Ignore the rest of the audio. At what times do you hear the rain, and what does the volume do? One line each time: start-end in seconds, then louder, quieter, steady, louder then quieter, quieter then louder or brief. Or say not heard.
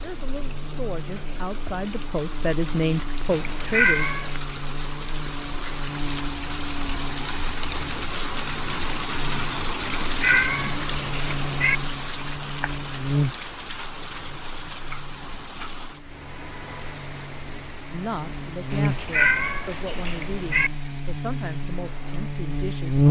0.0-23.0 louder then quieter.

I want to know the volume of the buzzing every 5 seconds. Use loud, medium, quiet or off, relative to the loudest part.
quiet, quiet, medium, medium, loud.